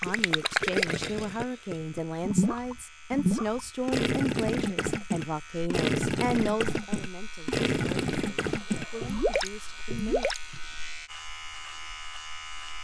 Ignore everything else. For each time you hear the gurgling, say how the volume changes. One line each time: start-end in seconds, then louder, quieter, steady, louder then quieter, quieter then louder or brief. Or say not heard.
0.0-10.6 steady.